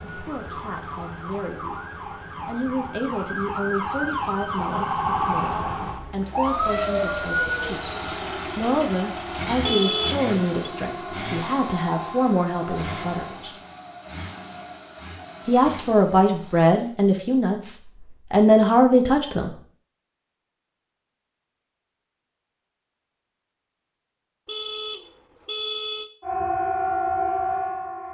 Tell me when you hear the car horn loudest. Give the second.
10 s.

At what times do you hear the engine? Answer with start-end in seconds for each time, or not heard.
6.3-16.9.